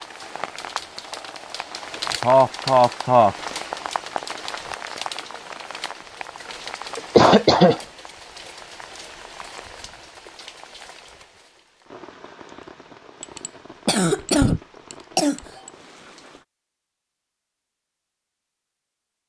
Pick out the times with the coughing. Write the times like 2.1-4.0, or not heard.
2.2-3.4, 7.0-7.8, 13.2-15.7.